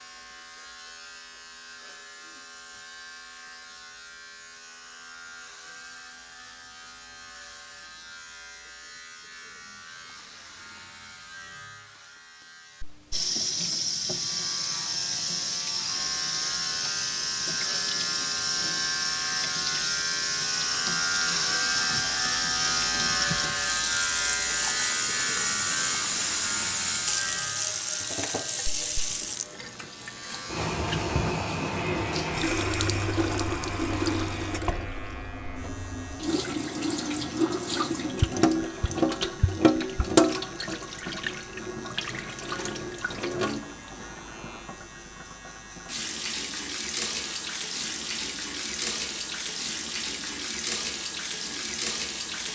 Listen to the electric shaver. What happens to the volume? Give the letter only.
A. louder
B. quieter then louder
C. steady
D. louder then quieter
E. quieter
D.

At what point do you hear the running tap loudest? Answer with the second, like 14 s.
40 s.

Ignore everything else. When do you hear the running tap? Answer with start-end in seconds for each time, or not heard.
13.1-52.5.